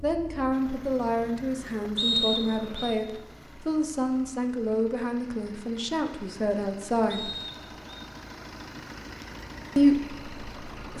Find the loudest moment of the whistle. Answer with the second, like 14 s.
2 s.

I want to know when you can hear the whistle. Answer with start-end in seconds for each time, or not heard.
1.9-2.9, 7.1-8.0.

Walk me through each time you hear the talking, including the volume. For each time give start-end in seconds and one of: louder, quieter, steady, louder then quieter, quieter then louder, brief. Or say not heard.
0.0-7.3 steady
9.8-10.9 brief.